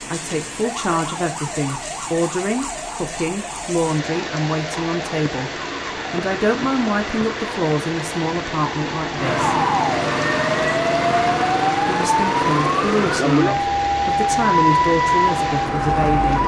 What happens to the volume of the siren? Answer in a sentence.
The volume of the siren goes up.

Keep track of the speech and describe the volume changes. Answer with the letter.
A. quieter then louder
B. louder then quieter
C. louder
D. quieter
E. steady
E.